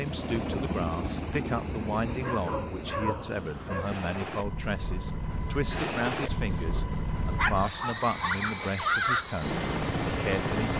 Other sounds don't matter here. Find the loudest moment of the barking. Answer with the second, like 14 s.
9 s.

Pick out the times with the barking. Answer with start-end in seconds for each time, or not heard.
2.0-3.9, 7.3-9.2.